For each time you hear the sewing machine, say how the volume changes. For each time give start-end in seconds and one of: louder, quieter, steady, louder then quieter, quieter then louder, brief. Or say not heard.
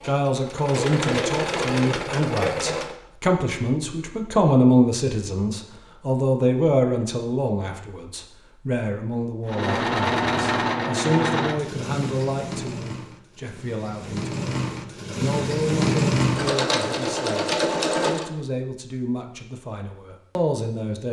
0.0-3.0 brief
9.4-18.3 quieter then louder.